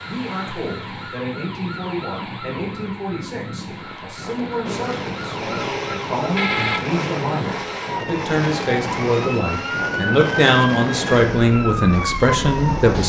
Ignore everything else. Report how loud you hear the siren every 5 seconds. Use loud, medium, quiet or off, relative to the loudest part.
medium, loud, loud.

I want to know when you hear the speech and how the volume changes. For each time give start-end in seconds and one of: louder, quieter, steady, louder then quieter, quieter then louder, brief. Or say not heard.
0.0-13.0 louder.